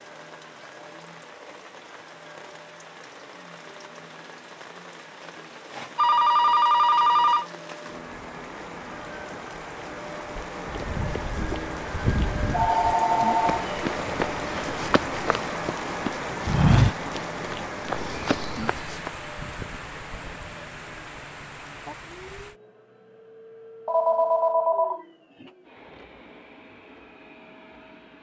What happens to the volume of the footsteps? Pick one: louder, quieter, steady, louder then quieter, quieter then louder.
louder then quieter.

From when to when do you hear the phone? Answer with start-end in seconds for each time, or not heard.
6.0-7.5, 12.5-13.7, 23.9-25.4.